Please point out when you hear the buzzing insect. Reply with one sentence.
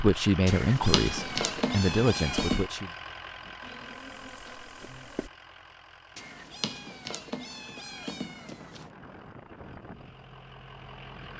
The buzzing insect can be heard from 3.6 to 5.3 s.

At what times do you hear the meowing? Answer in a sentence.
The meowing can be heard from 0.5 to 2.7 s and from 6.2 to 8.9 s.